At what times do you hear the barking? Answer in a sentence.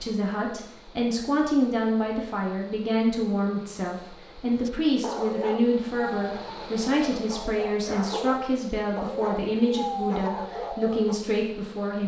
You can hear the barking from 4.5 to 11.2 s.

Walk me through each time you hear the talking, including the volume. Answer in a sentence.
The talking can be heard from 0.0 to 12.0 s, at a steady volume.